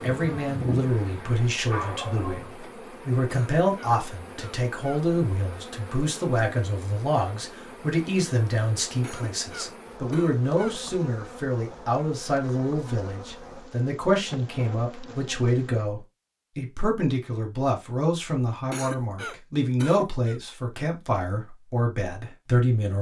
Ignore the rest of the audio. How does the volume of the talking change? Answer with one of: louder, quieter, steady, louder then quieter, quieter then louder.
steady.